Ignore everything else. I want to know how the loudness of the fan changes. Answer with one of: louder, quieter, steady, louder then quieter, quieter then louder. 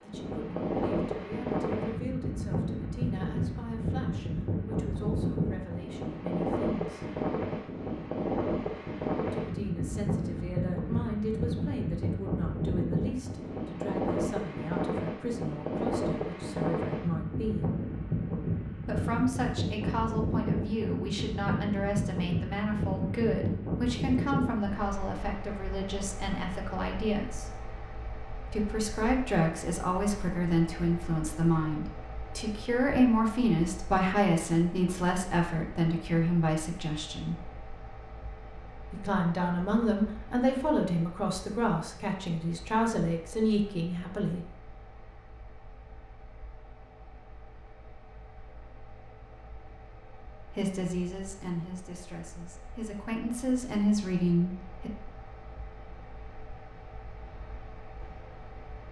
quieter.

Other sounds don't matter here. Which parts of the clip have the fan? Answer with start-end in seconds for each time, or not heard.
0.0-58.8.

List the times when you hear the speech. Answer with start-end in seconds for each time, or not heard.
0.0-7.0, 9.3-17.8, 18.8-27.5, 28.5-37.4, 38.9-44.5, 50.4-54.9.